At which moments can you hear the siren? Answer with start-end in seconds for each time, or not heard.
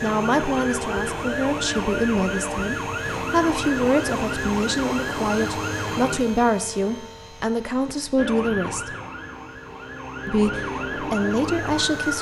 0.0-6.2, 8.2-12.1.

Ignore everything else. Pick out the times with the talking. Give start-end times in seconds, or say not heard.
0.0-8.9, 10.2-12.1.